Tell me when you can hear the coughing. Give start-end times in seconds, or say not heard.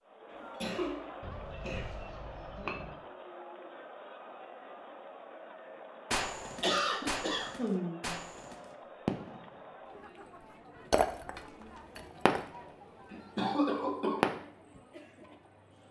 0.3-2.0, 6.6-8.2, 13.1-14.2.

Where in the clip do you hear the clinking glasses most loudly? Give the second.
11 s.